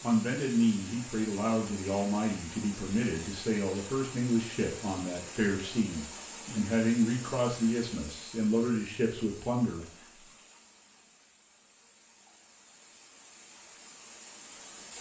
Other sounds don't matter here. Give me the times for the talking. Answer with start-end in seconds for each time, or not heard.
0.0-9.8.